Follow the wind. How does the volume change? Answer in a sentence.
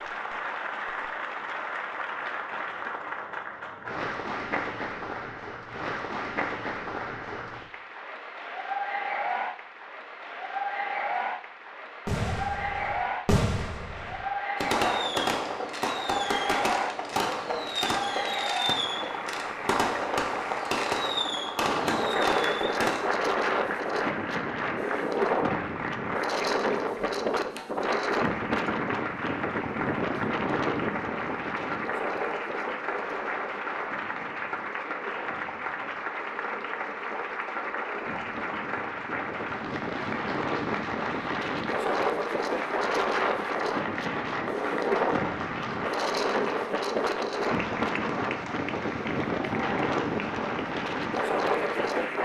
The loudness of the wind goes down, then up.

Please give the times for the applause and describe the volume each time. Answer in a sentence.
You can hear the applause from 0.0 to 52.2 s, at a steady volume.